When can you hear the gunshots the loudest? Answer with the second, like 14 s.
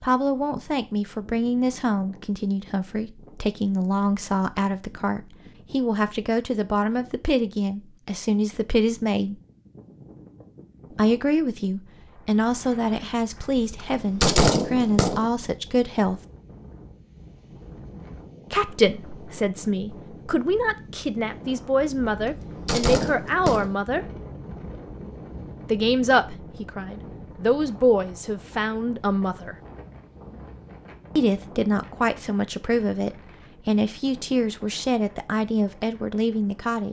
14 s.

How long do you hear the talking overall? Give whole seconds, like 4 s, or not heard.
30 s.